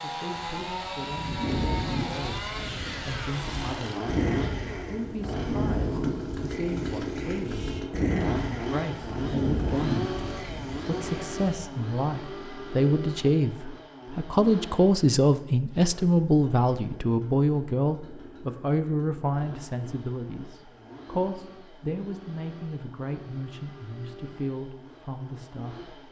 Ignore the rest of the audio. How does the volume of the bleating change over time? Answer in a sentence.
The volume of the bleating stays about the same.